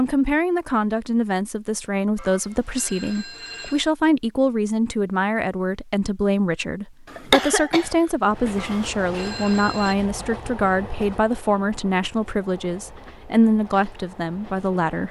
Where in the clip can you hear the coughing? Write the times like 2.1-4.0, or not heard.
7.0-8.9.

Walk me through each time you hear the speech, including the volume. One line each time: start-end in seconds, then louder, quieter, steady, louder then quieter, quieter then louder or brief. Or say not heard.
0.0-15.0 steady.